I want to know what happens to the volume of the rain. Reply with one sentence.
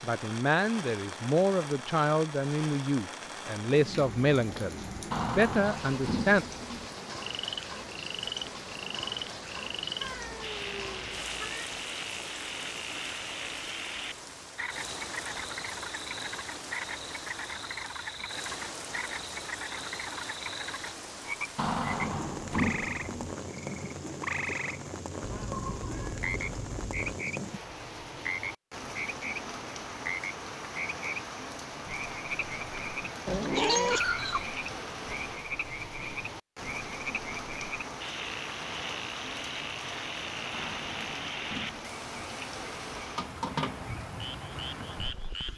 The volume of the rain stays about the same.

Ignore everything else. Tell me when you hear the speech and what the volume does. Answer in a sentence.
You can hear the speech from 0.0 to 6.5 s, at a steady volume.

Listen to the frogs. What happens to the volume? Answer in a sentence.
The volume of the frogs stays about the same.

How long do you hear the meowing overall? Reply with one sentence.
You can hear the meowing for 5 seconds altogether.